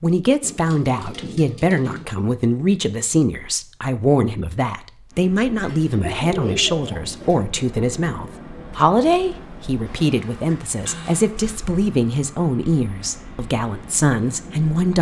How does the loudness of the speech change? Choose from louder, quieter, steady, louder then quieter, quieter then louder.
steady.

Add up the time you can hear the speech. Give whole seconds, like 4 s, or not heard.
15 s.